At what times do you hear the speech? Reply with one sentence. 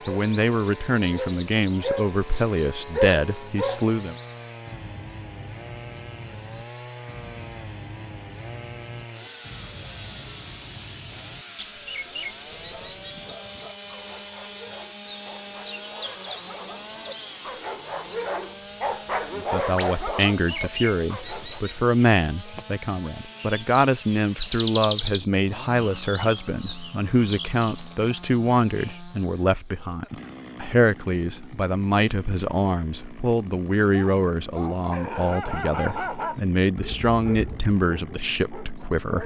You can hear the speech from 0.1 to 4.2 s and from 19.4 to 39.2 s.